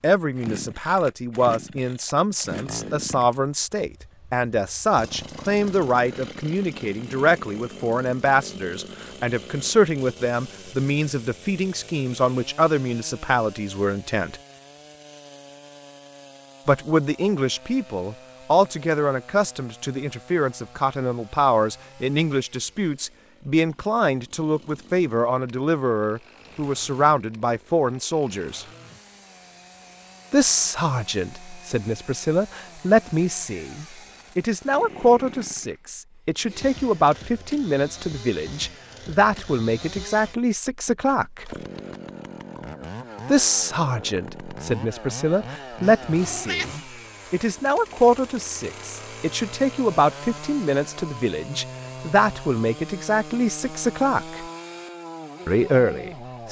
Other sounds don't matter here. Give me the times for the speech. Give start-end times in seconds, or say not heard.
0.0-14.3, 16.6-28.6, 30.3-41.5, 43.2-54.5, 55.5-56.4.